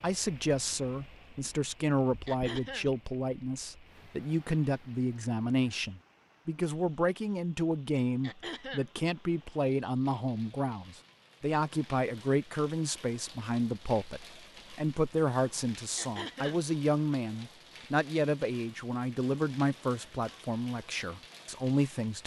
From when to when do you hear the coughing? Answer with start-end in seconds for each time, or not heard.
2.2-2.9, 8.2-8.9, 15.9-16.6.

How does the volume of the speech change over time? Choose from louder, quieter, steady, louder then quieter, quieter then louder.
steady.